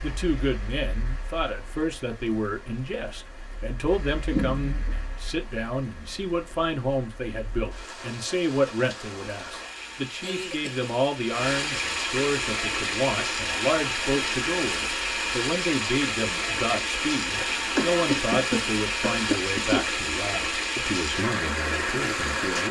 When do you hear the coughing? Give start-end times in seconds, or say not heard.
4.3-5.0, 10.2-10.9, 17.3-19.9.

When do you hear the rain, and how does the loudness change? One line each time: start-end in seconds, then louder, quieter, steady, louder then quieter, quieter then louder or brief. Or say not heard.
0.0-22.6 louder.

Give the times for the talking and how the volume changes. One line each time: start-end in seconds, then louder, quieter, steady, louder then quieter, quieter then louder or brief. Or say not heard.
0.0-22.6 steady.